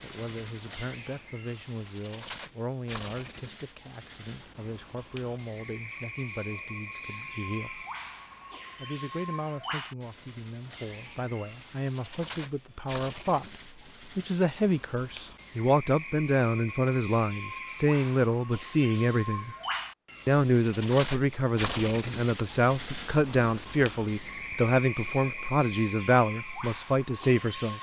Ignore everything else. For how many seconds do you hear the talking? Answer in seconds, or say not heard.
26 s.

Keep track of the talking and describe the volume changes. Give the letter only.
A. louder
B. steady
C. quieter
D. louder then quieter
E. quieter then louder
A.